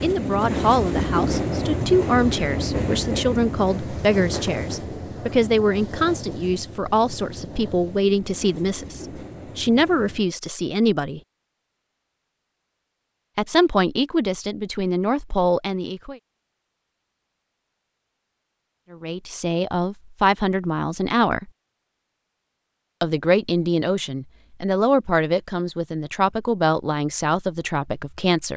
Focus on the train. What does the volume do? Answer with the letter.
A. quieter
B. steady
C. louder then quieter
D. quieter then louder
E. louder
A.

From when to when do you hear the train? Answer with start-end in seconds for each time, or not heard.
0.0-10.3.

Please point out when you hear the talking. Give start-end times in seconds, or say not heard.
0.0-11.2, 13.3-16.1, 18.9-21.5, 23.0-28.5.